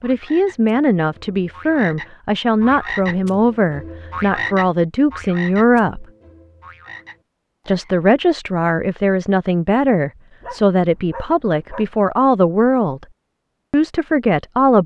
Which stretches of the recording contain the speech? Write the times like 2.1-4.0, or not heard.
0.0-6.0, 7.7-13.1, 13.7-14.8.